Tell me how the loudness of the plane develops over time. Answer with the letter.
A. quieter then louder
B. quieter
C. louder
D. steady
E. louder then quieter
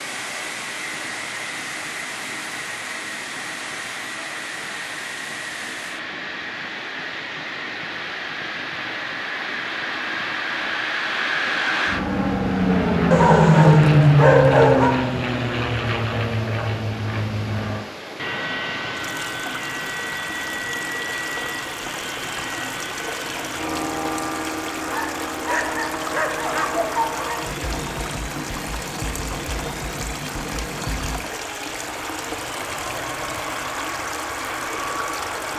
E.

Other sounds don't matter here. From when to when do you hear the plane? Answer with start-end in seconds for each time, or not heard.
0.0-35.5.